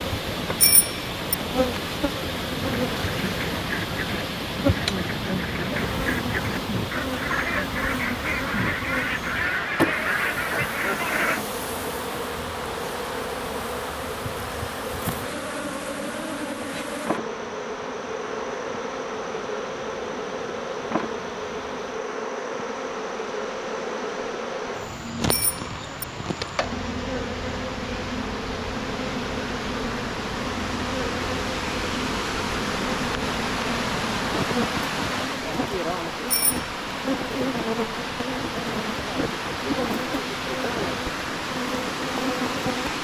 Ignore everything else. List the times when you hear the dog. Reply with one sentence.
The dog can't be heard in this clip.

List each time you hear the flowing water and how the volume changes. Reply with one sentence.
You can hear the flowing water from 0.0 to 43.0 s, getting quieter then louder.